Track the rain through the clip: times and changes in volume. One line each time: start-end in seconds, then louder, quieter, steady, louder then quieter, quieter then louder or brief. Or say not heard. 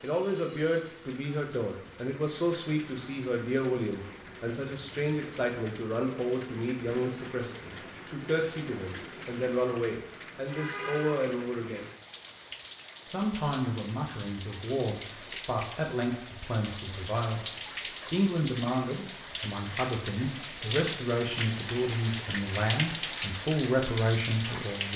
0.0-24.9 louder.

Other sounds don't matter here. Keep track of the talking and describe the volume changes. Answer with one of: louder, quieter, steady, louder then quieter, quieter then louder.
steady.